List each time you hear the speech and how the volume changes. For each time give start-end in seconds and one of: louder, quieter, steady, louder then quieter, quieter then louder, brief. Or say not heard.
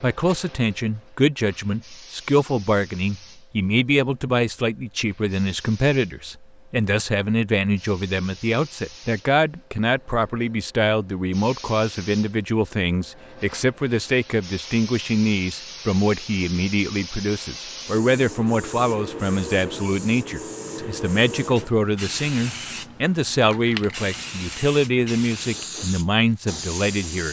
0.0-27.2 steady.